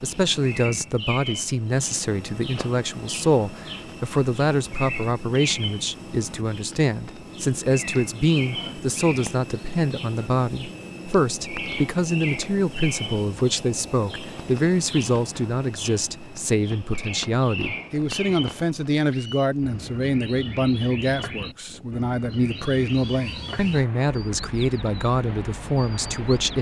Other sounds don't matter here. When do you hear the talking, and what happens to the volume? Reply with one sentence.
You can hear the talking from 0.0 to 26.5 s, at a steady volume.